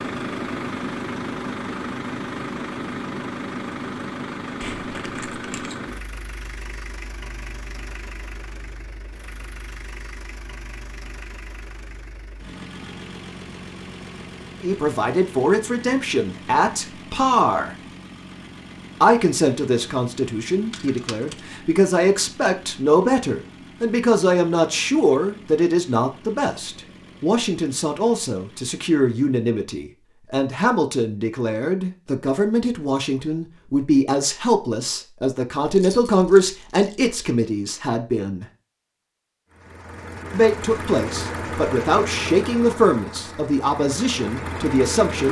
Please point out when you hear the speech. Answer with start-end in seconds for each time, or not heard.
14.6-17.8, 19.0-38.5, 40.3-45.2.